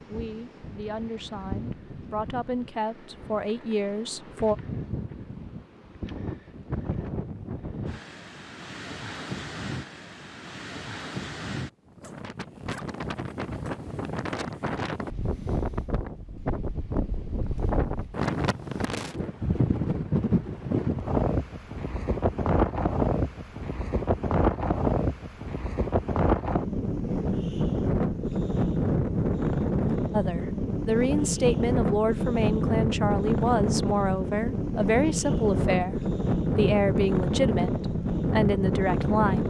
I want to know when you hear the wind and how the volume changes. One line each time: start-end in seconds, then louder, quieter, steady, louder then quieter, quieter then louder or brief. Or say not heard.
0.0-39.4 louder.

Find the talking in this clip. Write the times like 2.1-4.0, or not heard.
0.1-4.5, 30.1-39.4.